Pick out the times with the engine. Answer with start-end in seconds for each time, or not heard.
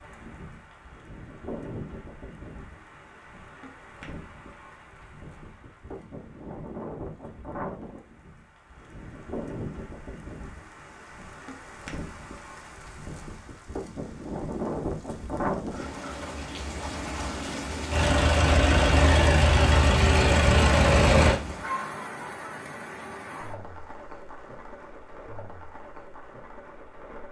17.9-21.4.